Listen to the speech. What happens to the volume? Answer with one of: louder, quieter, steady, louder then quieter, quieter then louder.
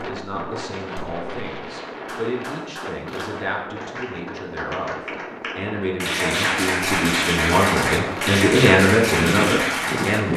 louder.